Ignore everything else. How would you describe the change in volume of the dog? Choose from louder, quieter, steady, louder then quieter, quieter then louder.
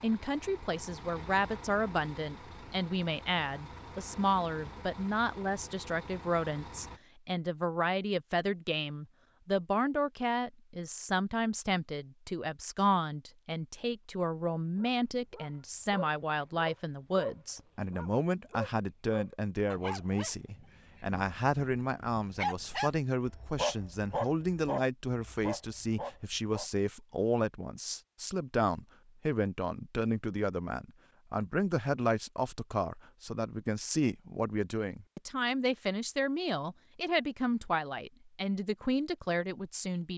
louder then quieter.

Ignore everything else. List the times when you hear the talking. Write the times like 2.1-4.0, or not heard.
0.0-40.1.